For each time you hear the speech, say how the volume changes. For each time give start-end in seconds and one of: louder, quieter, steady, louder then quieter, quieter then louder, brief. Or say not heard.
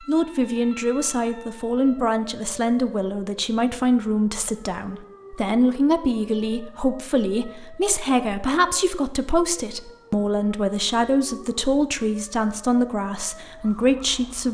0.1-14.4 steady.